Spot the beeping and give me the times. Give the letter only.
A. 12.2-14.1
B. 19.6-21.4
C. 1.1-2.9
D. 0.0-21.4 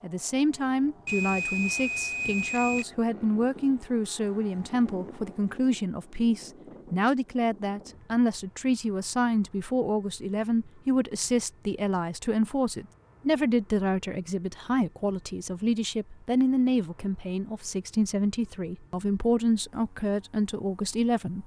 C.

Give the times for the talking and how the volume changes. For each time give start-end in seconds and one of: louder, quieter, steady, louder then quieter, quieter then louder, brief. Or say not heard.
0.0-21.4 steady.